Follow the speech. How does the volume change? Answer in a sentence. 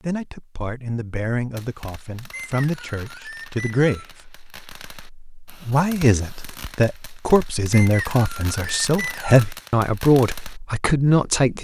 The volume of the speech goes up.